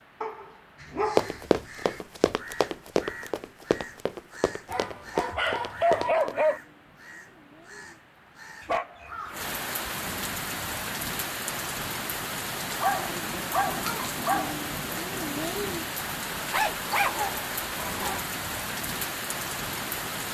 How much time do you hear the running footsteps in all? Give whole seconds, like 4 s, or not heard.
5 s.